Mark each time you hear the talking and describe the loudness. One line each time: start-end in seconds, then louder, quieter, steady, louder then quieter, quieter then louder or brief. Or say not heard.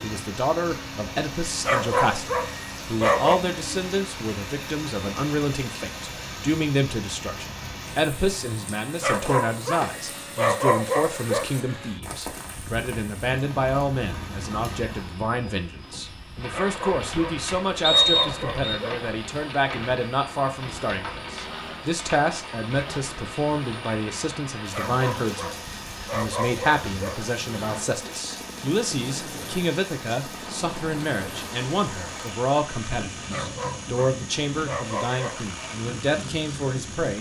0.0-37.1 steady.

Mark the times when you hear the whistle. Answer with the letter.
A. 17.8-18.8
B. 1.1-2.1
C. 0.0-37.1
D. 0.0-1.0
A.